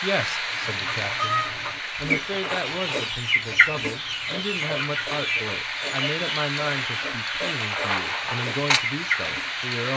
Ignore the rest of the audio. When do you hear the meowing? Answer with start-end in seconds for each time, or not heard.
not heard.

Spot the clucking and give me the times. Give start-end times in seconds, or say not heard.
0.5-9.8.